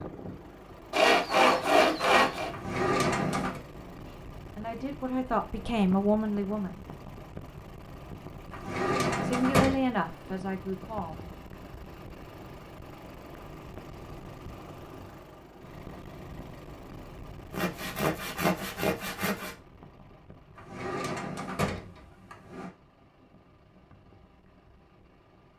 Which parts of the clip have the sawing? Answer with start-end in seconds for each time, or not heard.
0.9-2.5, 17.5-19.6.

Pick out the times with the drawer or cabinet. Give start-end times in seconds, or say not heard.
2.5-3.6, 8.5-9.8, 20.6-22.7.